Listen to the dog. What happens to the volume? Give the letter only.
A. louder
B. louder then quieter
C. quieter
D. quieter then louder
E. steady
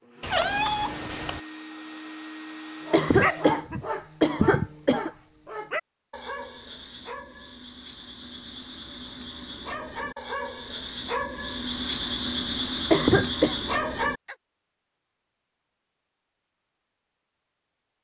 D.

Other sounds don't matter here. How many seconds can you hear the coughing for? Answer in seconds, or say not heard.
3 s.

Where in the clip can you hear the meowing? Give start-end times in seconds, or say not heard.
0.2-1.4.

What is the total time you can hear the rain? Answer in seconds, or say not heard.
not heard.